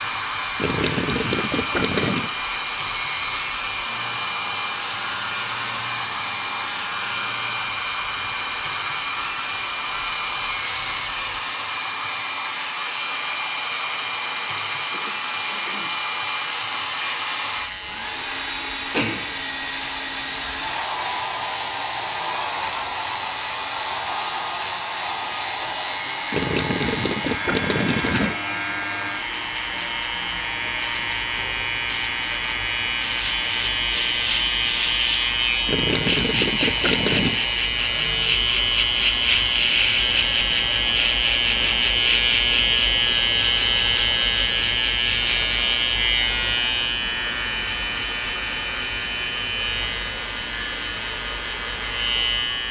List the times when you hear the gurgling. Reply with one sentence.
You can hear the gurgling from 0.6 to 2.3 s, from 26.3 to 28.4 s and from 35.6 to 37.4 s.